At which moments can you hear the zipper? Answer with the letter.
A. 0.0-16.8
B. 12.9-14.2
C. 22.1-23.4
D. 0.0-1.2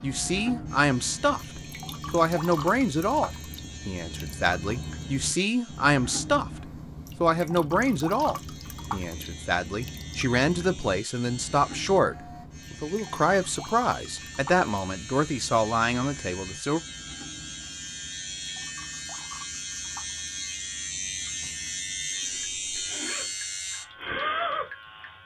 C.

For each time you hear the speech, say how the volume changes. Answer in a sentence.
You can hear the speech from 0.0 to 16.8 s, at a steady volume.